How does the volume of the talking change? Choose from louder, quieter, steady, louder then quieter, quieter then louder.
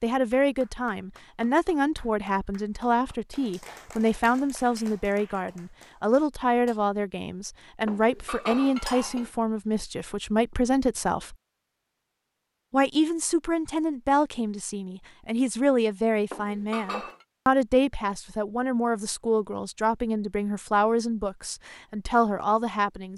steady.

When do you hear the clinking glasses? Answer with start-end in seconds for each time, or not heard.
7.8-9.3, 16.3-17.2.